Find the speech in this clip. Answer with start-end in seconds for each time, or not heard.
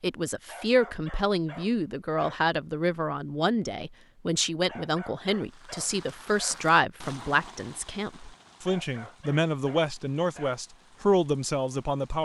0.0-12.2.